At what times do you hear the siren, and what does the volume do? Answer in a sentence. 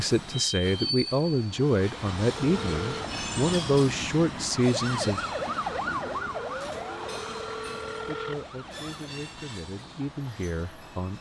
You can hear the siren from 4.5 to 9.2 s, getting quieter.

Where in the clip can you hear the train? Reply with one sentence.
The train can be heard from 0.0 to 11.1 s.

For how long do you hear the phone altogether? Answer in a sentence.
You can hear the phone for 2 seconds altogether.